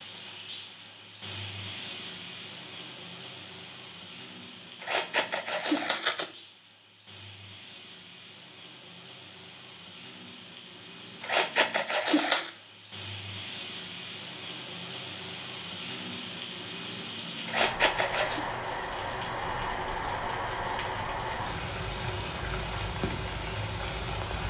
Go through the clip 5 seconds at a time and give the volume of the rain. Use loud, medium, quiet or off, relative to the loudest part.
medium, quiet, medium, loud, loud.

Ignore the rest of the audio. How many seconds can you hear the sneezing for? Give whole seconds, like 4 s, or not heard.
4 s.